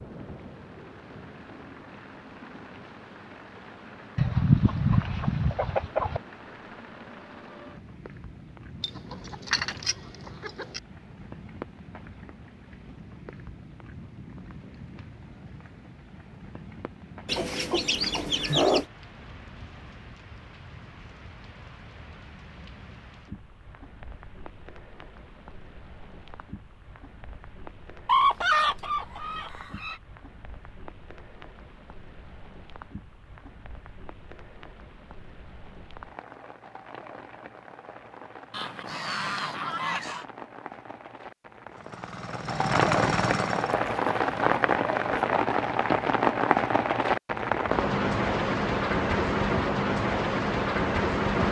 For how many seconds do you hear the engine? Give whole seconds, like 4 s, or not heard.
2 s.